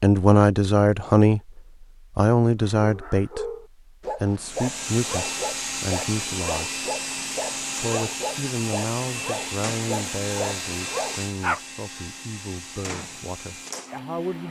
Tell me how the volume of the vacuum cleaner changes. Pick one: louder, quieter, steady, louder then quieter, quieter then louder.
quieter.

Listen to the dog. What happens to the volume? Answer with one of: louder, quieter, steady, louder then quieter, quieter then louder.
steady.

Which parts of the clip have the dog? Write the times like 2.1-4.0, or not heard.
2.8-11.6.